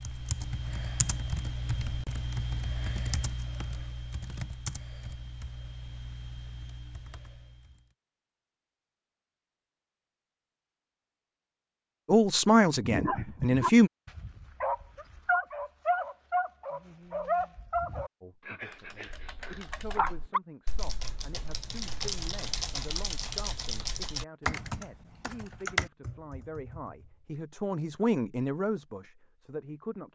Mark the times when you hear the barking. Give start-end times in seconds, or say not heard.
12.8-20.4.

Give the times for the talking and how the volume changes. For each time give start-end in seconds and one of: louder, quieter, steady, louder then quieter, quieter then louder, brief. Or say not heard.
12.1-13.9 brief
18.2-30.1 louder.